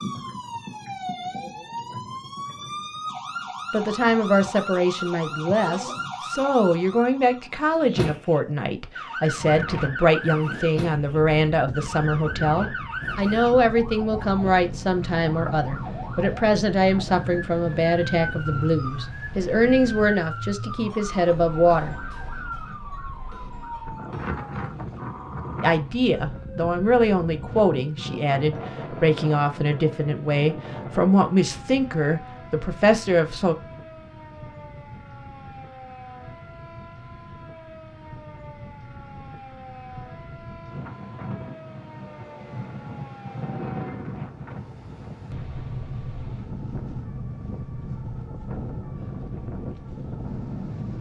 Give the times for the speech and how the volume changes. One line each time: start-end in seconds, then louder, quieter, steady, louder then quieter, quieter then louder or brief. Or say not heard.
3.7-21.9 steady
25.6-33.5 steady.